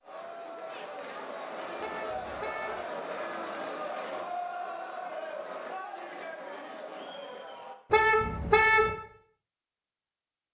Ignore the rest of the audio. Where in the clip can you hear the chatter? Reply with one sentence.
The chatter can be heard from 0.0 to 7.8 s.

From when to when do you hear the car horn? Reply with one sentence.
The car horn can be heard from 1.8 to 2.8 s and from 7.9 to 8.9 s.